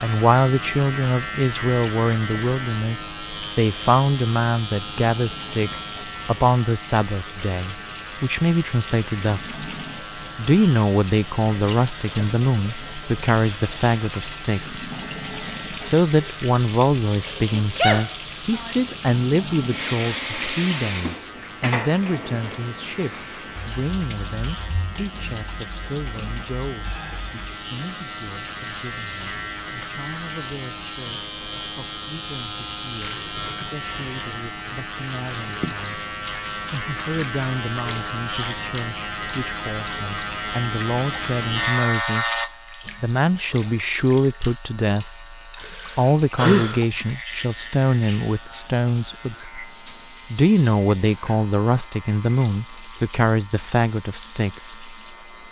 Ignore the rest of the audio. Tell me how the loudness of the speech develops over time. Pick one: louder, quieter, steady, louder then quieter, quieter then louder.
quieter then louder.